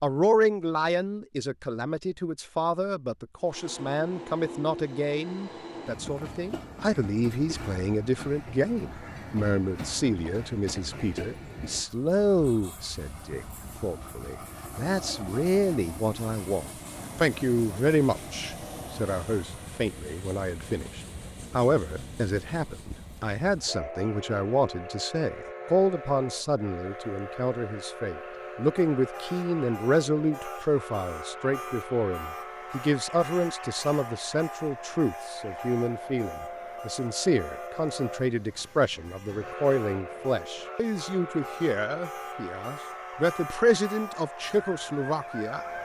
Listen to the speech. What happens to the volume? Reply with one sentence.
The volume of the speech stays about the same.